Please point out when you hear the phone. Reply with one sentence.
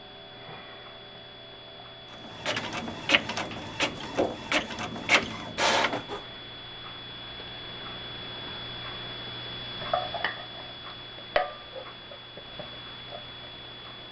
The phone can't be heard in this clip.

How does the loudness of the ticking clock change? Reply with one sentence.
The loudness of the ticking clock goes up.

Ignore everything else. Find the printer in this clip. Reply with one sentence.
You can hear the printer from 2.2 to 6.2 s.